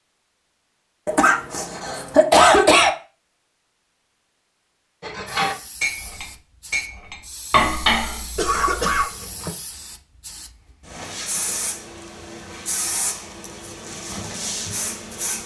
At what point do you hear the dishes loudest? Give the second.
8 s.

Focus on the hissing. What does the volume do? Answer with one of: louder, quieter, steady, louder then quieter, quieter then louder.
louder.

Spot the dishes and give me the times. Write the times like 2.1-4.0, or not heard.
5.0-9.1.